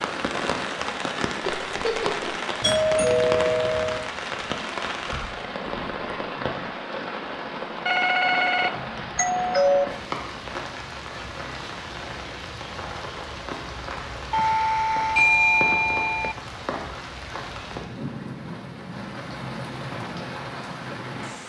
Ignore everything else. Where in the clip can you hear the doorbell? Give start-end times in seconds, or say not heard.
2.6-4.1, 7.8-9.8, 14.3-16.4.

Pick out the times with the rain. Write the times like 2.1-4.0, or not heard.
0.0-21.4.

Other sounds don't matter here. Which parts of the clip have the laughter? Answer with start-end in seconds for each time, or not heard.
1.4-2.4.